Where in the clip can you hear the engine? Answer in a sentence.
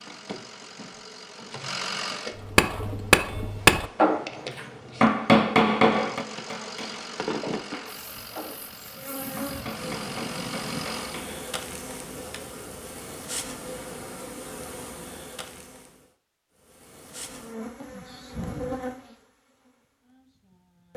You can hear the engine from 0.0 to 2.4 s and from 5.8 to 11.2 s.